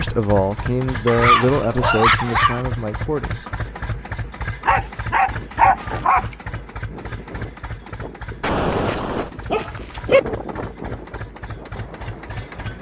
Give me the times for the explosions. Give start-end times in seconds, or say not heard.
8.4-9.3.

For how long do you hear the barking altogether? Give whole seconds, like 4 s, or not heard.
5 s.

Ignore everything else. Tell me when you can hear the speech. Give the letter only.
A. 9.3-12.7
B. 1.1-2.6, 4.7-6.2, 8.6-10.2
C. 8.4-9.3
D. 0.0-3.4
D.